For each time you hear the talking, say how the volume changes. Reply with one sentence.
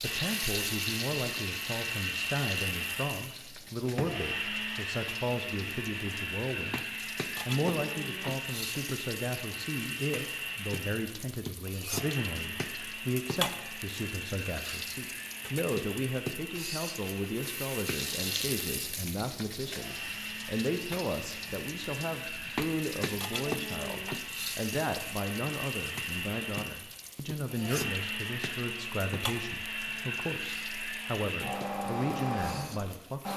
You can hear the talking from 0.0 to 6.8 s, at a steady volume; and from 7.5 to 33.3 s, at a steady volume.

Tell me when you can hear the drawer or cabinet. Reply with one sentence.
The drawer or cabinet can be heard from 3.6 to 4.2 s.